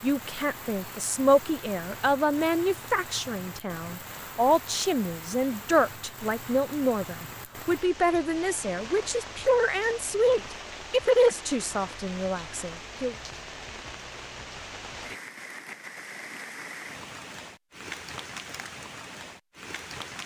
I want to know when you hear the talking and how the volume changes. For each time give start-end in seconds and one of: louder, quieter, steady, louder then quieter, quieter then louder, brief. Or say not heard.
0.0-13.2 steady.